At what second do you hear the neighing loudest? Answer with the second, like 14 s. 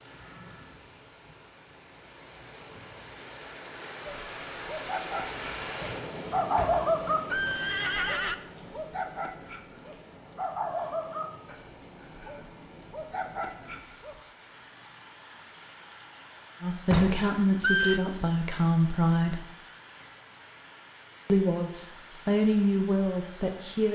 18 s.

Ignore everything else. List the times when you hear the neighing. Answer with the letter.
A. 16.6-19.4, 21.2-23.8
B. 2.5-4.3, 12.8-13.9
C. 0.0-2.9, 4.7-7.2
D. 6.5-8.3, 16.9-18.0
D.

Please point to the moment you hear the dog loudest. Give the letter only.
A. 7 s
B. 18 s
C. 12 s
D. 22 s
A.